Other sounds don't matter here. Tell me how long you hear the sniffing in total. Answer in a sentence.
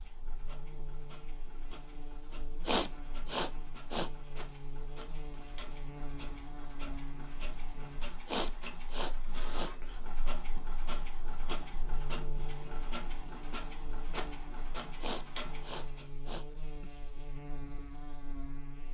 The sniffing can be heard for 5 seconds in total.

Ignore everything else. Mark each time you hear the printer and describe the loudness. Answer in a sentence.
You can hear the printer from 0.0 to 16.1 s, getting louder.